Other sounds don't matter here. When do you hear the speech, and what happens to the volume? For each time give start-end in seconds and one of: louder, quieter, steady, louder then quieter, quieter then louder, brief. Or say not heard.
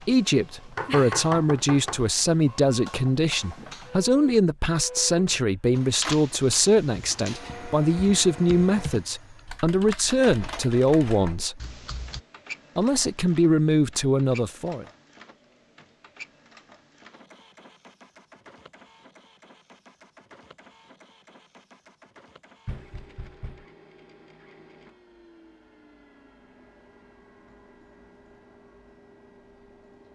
0.1-11.6 steady
12.8-14.8 brief.